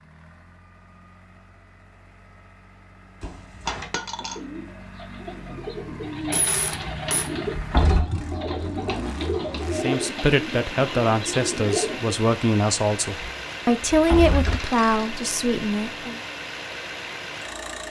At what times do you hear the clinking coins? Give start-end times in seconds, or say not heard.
3.6-4.4, 6.3-7.3, 14.3-15.1.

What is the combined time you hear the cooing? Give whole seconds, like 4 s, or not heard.
8 s.